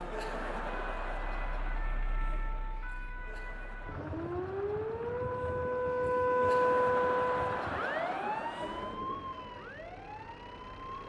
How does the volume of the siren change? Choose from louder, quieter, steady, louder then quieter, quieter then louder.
louder then quieter.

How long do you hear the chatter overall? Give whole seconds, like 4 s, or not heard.
9 s.